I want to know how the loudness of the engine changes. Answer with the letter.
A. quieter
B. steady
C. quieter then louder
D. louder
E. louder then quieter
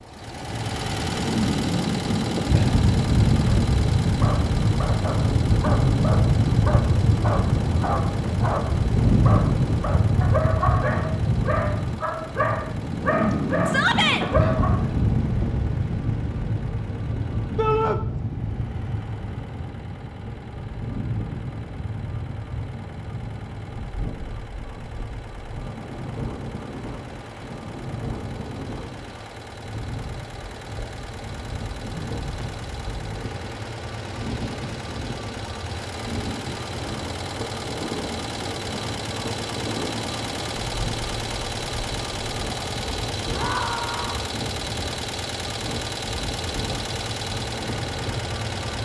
C.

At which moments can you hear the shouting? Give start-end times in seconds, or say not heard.
13.7-14.2, 17.6-18.0, 43.3-44.2.